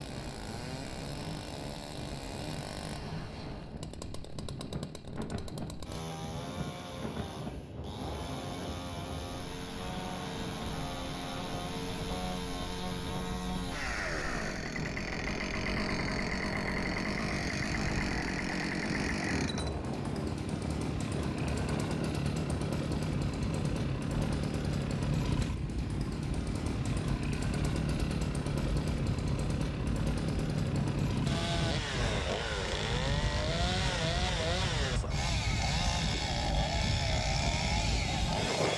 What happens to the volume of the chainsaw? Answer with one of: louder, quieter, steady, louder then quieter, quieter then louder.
louder.